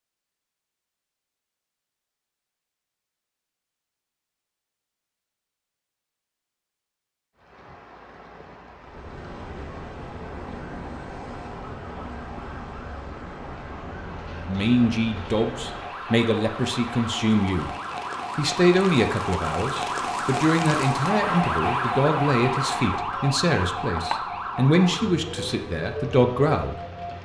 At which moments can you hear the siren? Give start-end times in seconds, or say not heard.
8.8-27.1.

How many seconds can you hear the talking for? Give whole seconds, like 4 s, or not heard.
12 s.